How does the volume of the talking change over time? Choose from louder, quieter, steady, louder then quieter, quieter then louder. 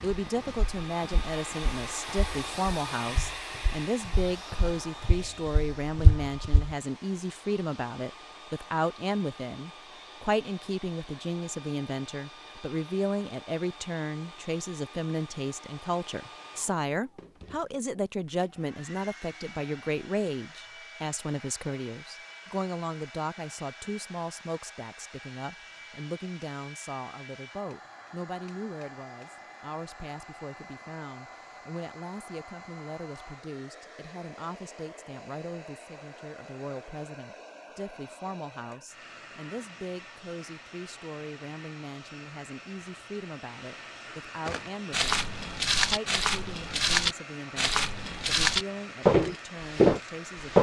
quieter.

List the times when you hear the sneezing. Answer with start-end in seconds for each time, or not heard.
not heard.